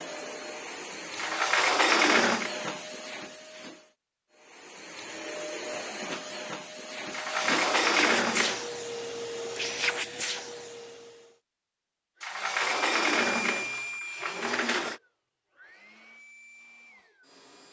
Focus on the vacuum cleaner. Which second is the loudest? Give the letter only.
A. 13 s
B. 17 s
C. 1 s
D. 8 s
D.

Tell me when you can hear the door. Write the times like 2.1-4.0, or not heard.
1.1-2.5, 7.1-8.7, 12.2-15.0.